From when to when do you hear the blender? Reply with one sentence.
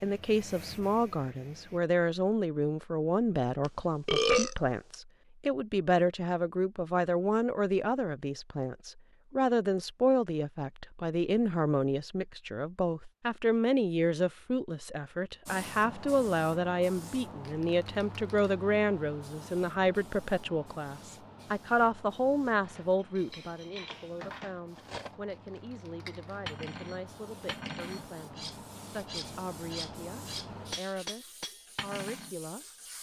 You can't hear the blender here.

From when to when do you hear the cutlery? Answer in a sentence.
You can hear the cutlery from 22.6 to 32.4 s.